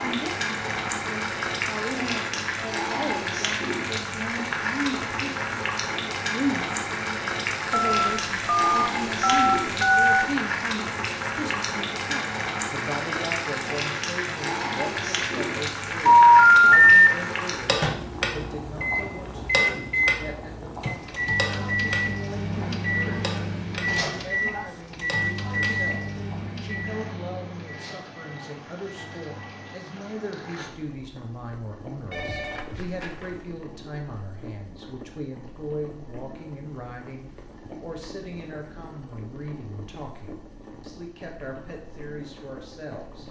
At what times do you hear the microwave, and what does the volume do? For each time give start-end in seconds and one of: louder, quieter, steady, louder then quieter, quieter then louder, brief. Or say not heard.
17.8-29.9 quieter.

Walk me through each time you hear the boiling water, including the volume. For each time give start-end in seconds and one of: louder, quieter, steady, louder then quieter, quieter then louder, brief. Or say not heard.
0.0-43.2 quieter.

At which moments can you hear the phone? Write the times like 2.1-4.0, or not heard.
7.7-10.2, 16.1-16.9, 32.1-33.4.